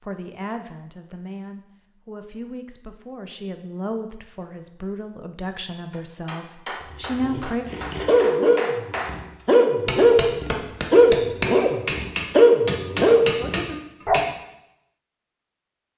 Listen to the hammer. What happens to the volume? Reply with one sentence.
The loudness of the hammer goes up.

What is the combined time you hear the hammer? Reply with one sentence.
The hammer can be heard for 8 seconds in total.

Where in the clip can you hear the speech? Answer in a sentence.
You can hear the speech from 0.0 to 7.7 s.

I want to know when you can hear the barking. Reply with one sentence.
The barking can be heard from 6.8 to 14.2 s.